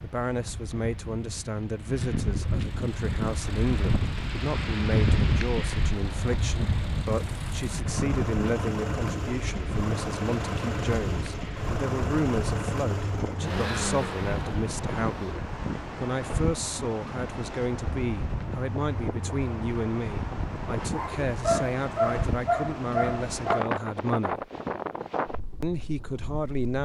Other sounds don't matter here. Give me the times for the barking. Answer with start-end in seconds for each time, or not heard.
20.9-23.6.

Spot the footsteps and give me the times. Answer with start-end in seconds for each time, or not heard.
not heard.